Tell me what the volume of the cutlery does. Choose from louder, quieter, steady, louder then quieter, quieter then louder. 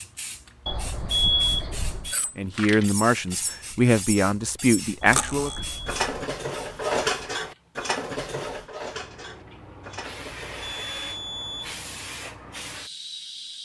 louder then quieter.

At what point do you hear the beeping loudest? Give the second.
1 s.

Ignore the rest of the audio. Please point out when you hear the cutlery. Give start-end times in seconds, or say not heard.
2.1-10.8.